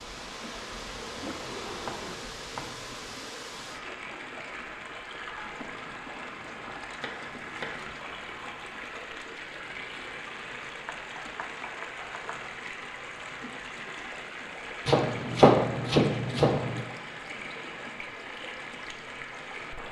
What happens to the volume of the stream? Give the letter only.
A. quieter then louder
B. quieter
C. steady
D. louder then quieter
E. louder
C.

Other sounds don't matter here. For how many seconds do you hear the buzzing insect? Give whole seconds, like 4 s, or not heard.
2 s.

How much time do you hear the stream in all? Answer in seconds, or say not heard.
20 s.